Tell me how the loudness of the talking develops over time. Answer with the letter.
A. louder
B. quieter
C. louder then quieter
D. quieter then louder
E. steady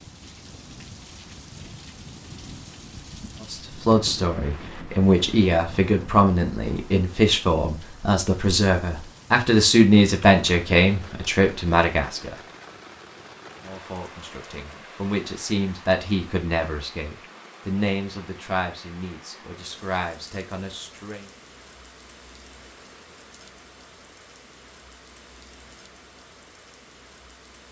B.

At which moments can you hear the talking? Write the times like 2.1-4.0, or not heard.
3.5-12.3, 13.6-21.3.